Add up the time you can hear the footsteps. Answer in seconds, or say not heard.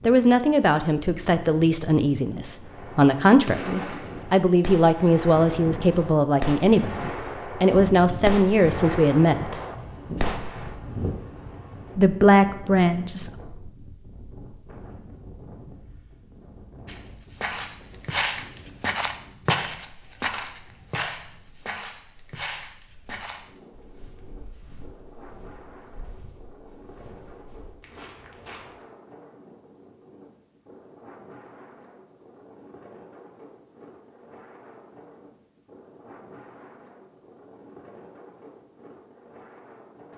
12 s.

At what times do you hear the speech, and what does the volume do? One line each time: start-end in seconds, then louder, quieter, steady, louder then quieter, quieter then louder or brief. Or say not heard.
0.0-9.6 steady
11.9-13.3 brief.